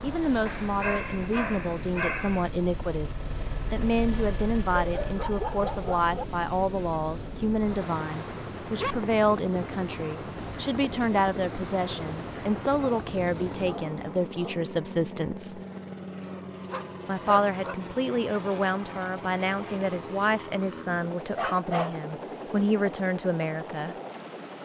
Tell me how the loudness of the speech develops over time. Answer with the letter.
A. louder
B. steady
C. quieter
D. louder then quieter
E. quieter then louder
B.